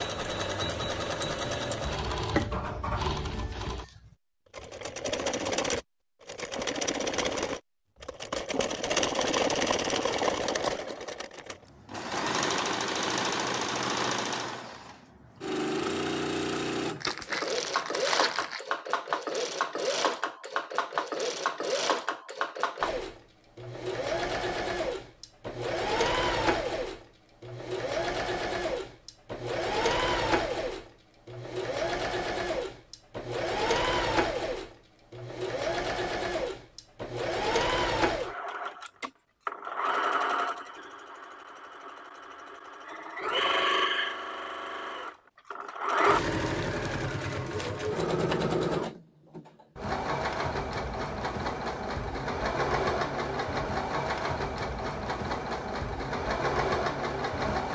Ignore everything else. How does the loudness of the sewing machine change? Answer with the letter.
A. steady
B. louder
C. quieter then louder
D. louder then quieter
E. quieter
A.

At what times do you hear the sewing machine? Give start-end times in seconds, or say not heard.
0.0-57.6.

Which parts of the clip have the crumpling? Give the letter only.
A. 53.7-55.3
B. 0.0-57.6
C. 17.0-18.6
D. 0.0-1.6
C.